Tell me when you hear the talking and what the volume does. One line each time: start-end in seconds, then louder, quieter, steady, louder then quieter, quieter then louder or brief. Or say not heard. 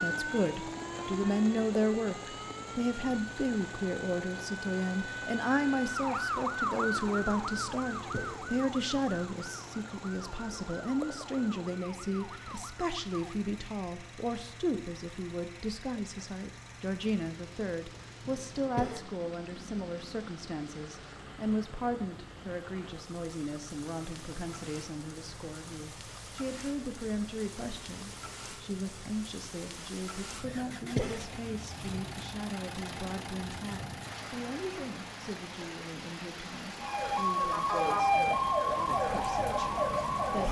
0.0-40.4 quieter.